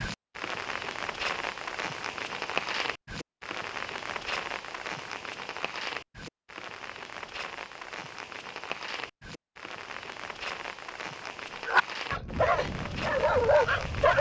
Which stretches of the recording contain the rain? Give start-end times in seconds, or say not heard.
0.0-14.1.